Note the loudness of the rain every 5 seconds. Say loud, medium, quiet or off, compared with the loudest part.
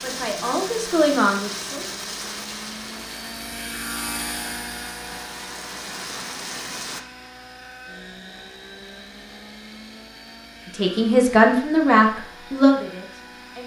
loud, loud, off.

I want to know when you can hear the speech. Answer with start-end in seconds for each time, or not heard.
0.0-1.9, 10.8-13.6.